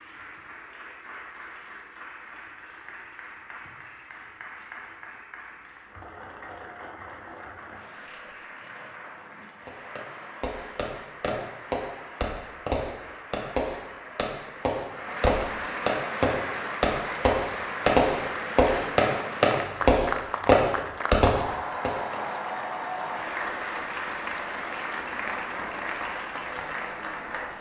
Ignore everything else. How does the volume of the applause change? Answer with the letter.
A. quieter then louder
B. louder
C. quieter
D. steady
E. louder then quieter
B.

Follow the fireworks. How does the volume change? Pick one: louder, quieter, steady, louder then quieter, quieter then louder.
louder.